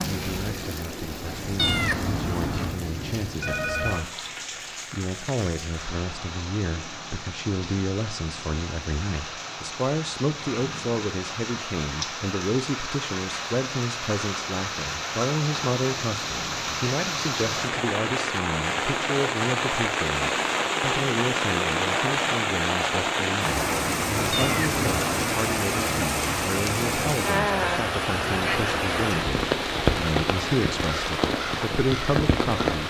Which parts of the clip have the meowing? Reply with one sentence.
You can hear the meowing from 1.6 to 2.8 s and from 24.3 to 24.8 s.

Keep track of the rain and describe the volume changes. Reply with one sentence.
The loudness of the rain goes up.